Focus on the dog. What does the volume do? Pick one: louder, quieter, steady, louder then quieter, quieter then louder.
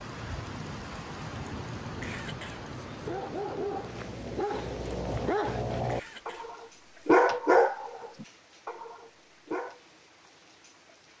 louder then quieter.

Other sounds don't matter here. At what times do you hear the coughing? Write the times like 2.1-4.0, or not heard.
1.9-2.7, 5.8-6.5.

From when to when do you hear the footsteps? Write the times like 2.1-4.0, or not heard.
not heard.